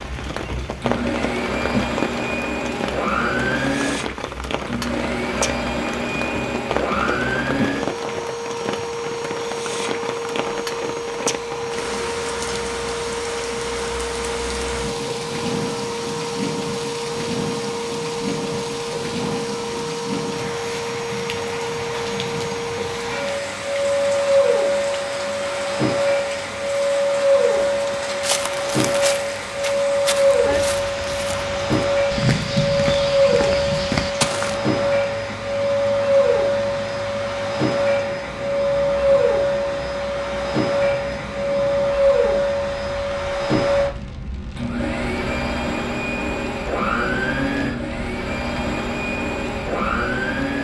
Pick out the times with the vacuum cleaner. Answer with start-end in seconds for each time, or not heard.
0.0-50.6.